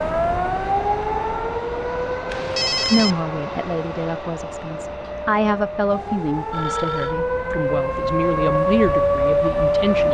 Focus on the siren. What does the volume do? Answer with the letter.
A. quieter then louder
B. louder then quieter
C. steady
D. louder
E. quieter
A.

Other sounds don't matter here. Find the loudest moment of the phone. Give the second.
3 s.